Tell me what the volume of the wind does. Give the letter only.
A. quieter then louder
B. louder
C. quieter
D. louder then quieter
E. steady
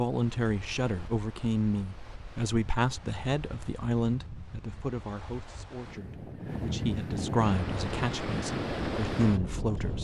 B.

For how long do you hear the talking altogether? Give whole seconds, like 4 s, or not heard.
10 s.